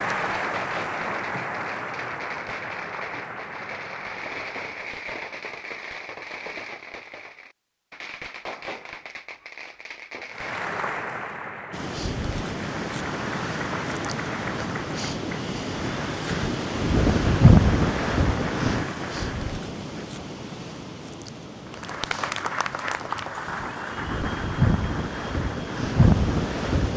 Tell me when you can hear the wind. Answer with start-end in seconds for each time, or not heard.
11.7-26.9.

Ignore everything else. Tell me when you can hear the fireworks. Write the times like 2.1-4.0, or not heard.
0.1-10.6.